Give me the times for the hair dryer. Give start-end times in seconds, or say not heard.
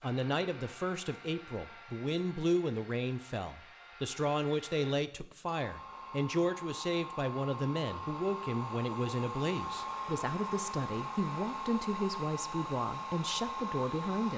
0.0-14.3.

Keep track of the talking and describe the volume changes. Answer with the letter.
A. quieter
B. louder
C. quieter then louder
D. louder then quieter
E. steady
E.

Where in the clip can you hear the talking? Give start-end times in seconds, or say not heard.
0.0-14.3.